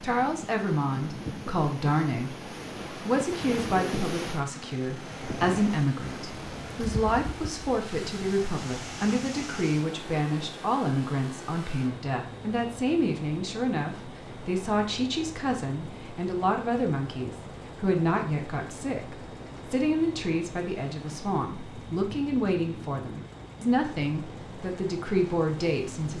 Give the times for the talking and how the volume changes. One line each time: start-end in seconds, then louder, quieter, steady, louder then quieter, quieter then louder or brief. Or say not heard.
0.0-2.4 brief
3.0-26.1 steady.